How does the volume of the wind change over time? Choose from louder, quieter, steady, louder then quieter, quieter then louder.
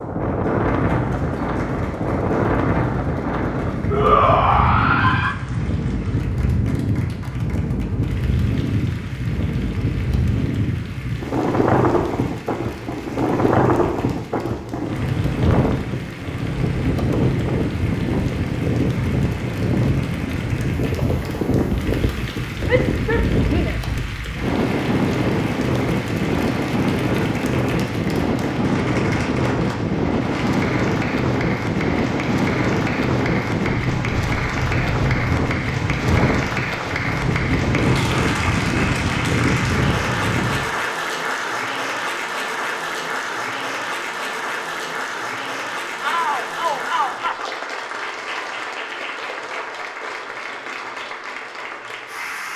steady.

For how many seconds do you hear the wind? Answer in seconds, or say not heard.
41 s.